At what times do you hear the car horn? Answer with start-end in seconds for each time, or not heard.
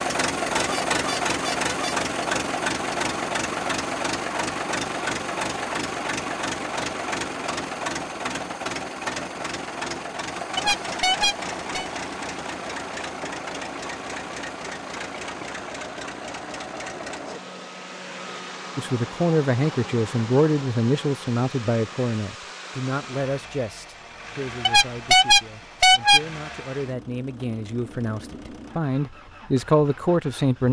0.5-1.9, 10.6-11.8, 24.6-26.2.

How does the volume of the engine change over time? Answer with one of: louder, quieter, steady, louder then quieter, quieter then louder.
quieter.